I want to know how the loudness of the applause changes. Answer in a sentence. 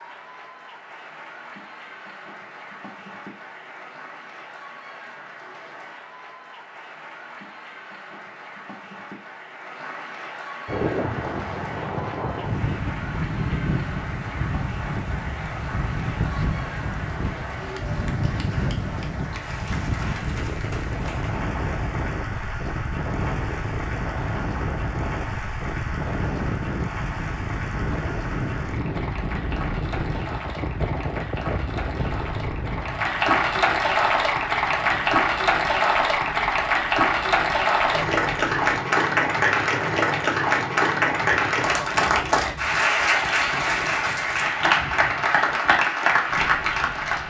The volume of the applause goes up.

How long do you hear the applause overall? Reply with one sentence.
You can hear the applause for 47 seconds altogether.